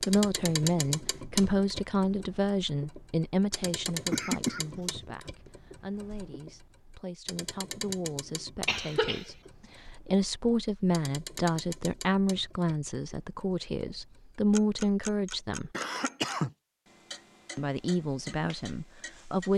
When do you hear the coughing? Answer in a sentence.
You can hear the coughing from 3.9 to 4.8 s, from 8.7 to 9.2 s and from 15.7 to 16.5 s.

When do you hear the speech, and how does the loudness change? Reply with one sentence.
You can hear the speech from 0.0 to 15.7 s, getting quieter then louder; and briefly from 17.6 to 19.5 s.